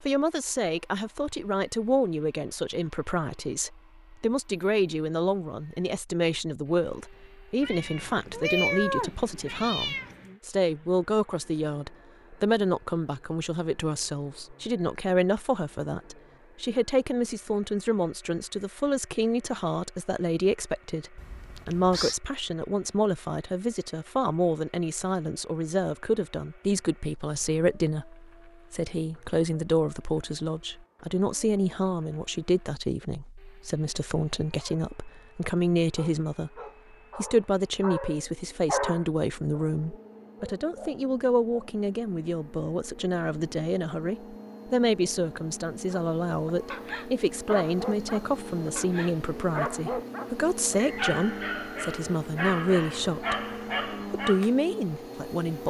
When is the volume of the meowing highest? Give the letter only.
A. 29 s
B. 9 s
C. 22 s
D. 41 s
B.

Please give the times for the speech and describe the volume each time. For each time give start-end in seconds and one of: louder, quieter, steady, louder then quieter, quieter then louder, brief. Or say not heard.
0.0-55.6 steady.